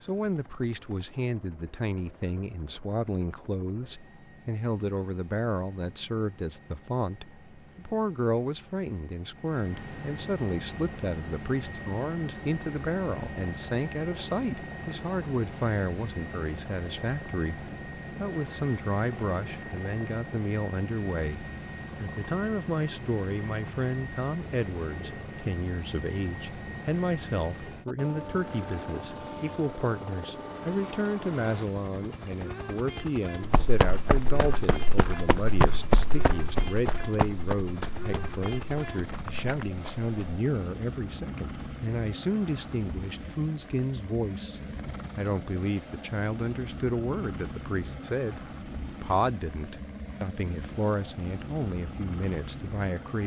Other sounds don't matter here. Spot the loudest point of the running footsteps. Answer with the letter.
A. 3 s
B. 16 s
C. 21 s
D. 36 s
D.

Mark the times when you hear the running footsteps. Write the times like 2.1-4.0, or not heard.
33.4-40.4.